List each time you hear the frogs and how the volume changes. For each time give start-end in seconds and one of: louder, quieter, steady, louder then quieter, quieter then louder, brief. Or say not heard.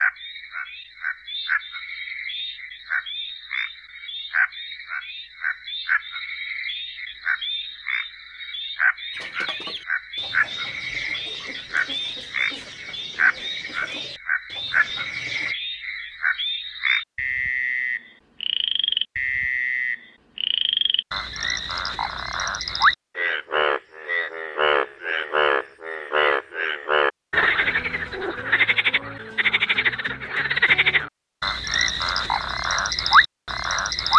0.0-34.1 louder.